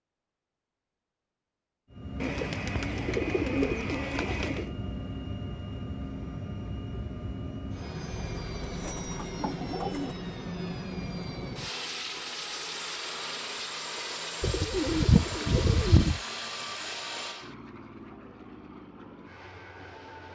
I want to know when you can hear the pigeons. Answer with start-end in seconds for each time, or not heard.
2.2-4.7, 8.7-10.2, 14.4-16.2.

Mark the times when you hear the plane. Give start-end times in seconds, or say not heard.
1.9-20.2.